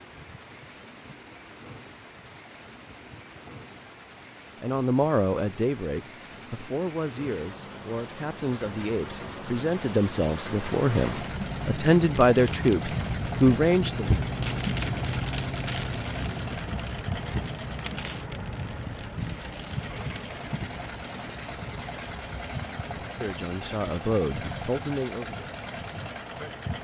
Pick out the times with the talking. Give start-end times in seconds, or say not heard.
4.6-14.1, 22.6-25.4.